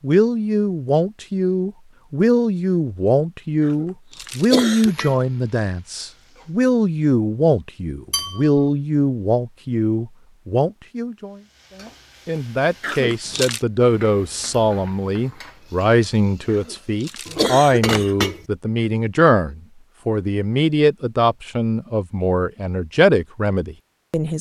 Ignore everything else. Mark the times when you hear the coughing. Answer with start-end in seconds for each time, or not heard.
3.6-5.0, 12.8-13.6, 16.5-18.3.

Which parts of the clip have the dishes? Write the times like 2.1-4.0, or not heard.
8.1-8.6, 17.2-18.4.